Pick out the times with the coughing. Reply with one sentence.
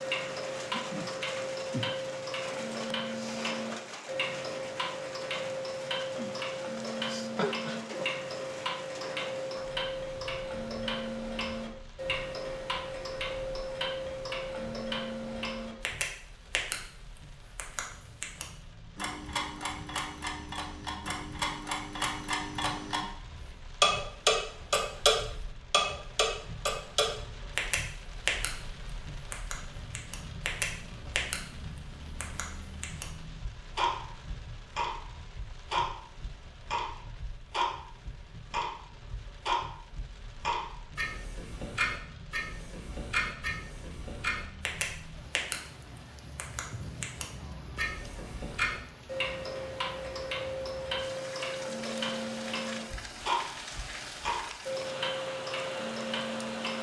The coughing can be heard from 7.3 to 8.1 s.